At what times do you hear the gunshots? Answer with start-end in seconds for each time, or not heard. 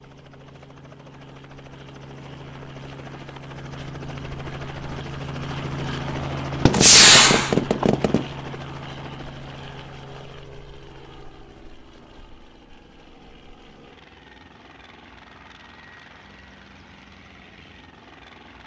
6.7-8.2.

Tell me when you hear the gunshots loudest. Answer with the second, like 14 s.
7 s.